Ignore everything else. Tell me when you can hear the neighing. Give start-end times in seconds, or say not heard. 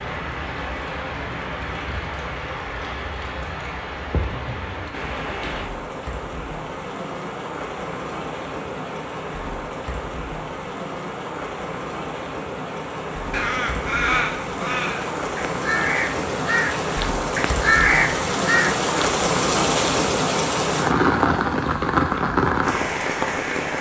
not heard.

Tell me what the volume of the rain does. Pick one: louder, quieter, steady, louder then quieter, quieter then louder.
louder.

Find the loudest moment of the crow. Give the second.
18 s.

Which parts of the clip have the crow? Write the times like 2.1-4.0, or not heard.
13.3-18.9.